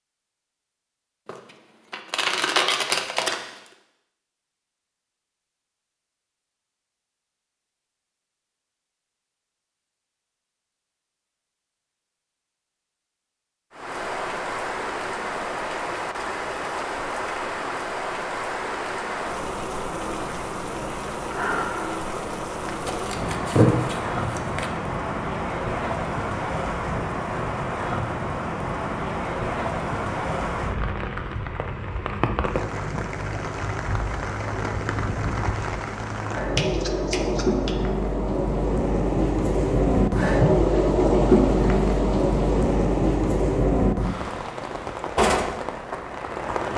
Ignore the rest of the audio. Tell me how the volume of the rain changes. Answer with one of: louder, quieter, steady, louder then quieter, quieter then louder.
louder.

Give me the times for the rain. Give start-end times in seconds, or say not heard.
13.7-46.7.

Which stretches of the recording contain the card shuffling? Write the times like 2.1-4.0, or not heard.
1.2-3.4, 22.9-24.7, 36.5-37.8.